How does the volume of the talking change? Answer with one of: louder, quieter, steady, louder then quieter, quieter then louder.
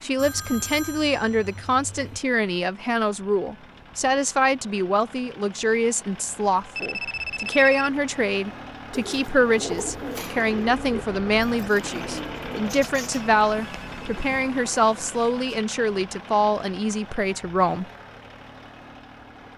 steady.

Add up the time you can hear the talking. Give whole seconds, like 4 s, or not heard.
18 s.